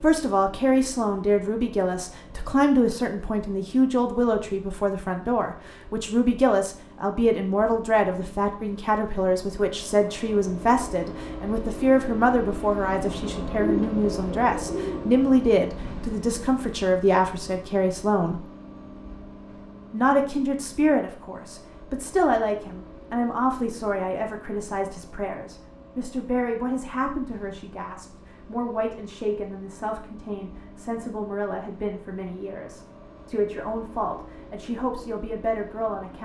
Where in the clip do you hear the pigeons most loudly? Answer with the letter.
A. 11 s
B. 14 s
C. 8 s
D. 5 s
B.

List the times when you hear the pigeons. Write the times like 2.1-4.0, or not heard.
13.6-15.2.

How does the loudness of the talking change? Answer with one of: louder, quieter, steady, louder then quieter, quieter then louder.
quieter.